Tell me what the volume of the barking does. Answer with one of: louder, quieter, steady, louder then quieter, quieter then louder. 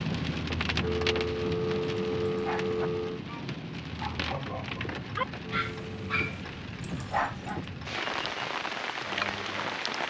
louder.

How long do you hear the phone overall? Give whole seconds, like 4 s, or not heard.
3 s.